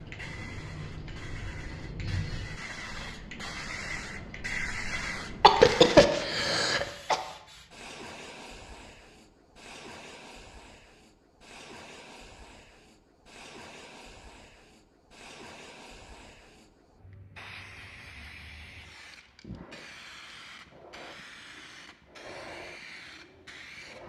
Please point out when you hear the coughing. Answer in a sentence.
You can hear the coughing from 5.4 to 7.2 s.